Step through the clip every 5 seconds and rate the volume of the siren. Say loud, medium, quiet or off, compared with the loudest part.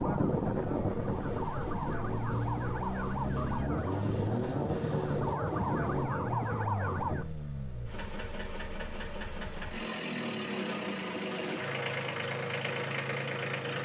loud, loud, off.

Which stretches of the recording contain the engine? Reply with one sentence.
The engine can be heard from 0.0 to 13.8 s.